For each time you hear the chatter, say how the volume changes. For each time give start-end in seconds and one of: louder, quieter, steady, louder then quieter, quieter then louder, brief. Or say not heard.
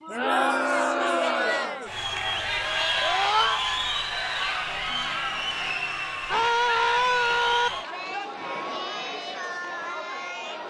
0.0-10.6 quieter.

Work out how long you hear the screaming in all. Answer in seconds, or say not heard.
2 s.